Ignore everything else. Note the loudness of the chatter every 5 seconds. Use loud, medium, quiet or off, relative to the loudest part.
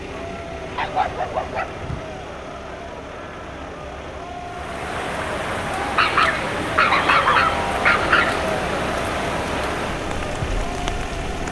medium, loud, medium.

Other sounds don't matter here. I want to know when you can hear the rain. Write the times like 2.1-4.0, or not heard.
4.5-11.4.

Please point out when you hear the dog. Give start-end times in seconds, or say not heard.
0.8-2.1, 5.8-8.5.